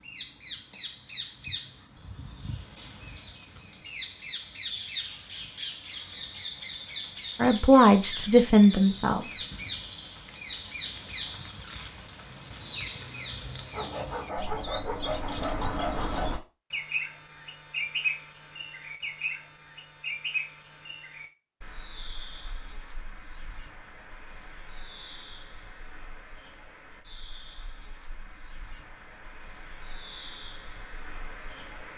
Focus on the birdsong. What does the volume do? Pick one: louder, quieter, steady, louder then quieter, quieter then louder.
quieter.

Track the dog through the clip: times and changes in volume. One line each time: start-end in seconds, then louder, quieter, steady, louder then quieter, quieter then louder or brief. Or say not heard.
not heard.